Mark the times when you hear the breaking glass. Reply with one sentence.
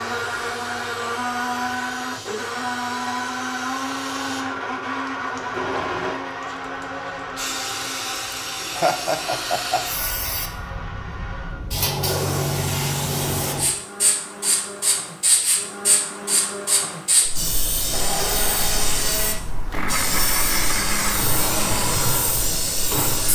You can't hear the breaking glass here.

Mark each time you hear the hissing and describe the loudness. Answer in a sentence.
You can hear the hissing from 0.0 to 23.3 s, getting louder.